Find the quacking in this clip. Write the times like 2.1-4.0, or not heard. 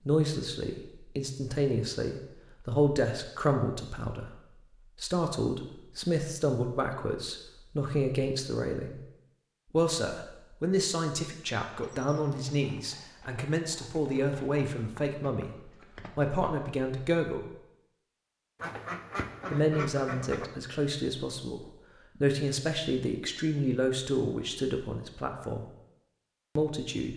18.6-20.5.